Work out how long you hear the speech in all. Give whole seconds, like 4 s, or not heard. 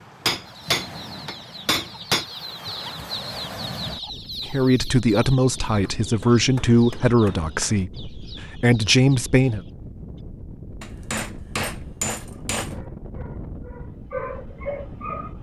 5 s.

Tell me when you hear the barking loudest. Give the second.
14 s.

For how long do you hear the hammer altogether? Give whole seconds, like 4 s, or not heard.
6 s.